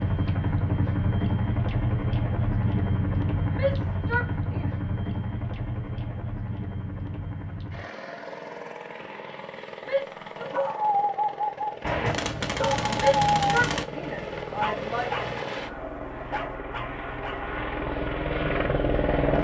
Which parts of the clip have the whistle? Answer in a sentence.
You can't hear the whistle here.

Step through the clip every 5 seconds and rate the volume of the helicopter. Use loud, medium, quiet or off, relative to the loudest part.
loud, medium, medium, loud.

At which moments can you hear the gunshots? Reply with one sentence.
You can hear the gunshots from 11.8 to 13.8 s.